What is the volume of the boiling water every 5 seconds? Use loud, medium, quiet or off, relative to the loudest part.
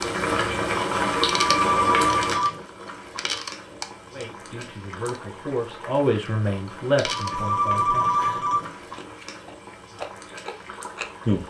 loud, quiet, quiet.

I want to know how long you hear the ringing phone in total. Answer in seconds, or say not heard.
3 s.